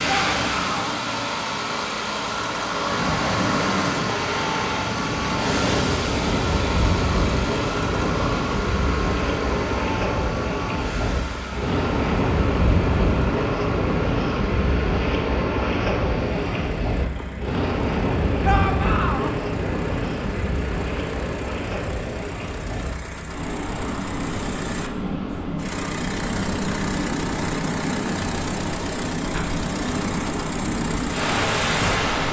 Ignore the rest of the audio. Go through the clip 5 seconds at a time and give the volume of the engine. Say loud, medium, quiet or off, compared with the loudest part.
loud, loud, medium, medium, medium, medium, medium.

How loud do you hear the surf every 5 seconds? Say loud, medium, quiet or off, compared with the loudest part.
loud, loud, loud, loud, medium, loud, loud.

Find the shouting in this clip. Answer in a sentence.
You can hear the shouting from 0.1 to 0.9 s and from 18.4 to 19.3 s.